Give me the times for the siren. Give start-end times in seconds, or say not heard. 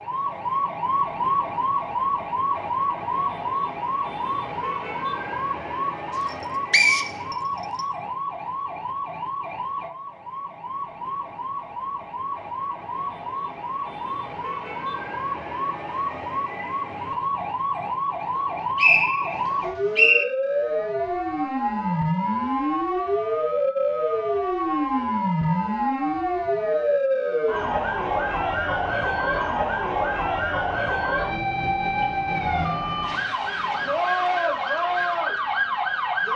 0.0-36.3.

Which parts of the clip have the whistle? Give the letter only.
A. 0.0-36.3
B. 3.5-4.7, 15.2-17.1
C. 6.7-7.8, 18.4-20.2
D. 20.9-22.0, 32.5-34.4
C.